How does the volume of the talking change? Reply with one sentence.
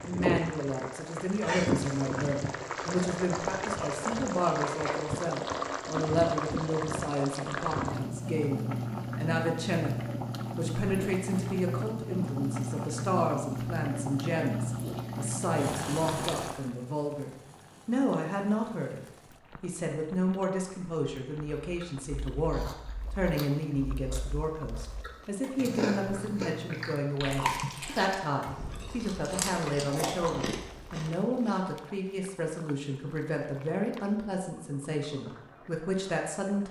The loudness of the talking stays about the same.